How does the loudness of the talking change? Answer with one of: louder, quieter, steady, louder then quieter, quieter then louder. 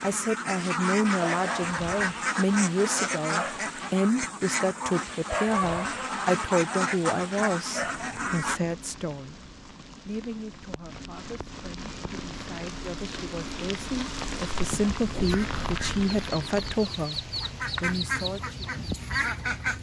quieter then louder.